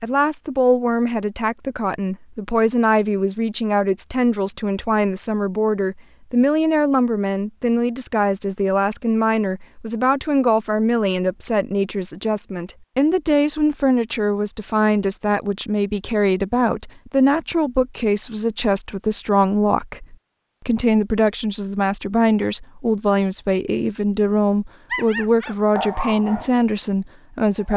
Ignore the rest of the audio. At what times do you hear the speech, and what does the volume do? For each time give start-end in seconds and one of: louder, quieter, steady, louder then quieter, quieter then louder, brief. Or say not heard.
0.0-27.7 steady.